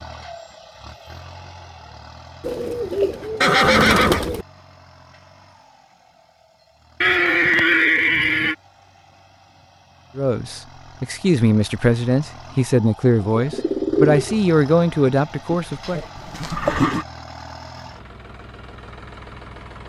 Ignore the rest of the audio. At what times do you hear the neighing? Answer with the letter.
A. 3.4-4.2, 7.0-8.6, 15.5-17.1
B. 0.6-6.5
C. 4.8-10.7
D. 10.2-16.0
A.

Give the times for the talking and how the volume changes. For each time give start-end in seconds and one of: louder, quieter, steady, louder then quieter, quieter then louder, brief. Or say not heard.
10.2-16.0 steady.